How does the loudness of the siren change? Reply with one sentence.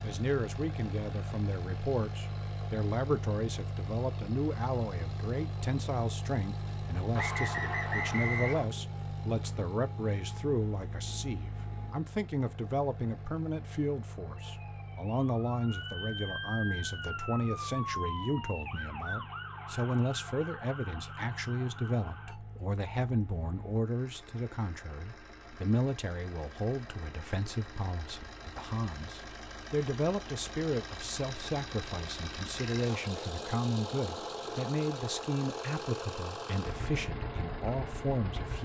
The volume of the siren goes up, then down.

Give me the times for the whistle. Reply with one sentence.
You can hear the whistle from 7.2 to 8.7 s.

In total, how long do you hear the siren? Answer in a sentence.
You can hear the siren for 8 seconds altogether.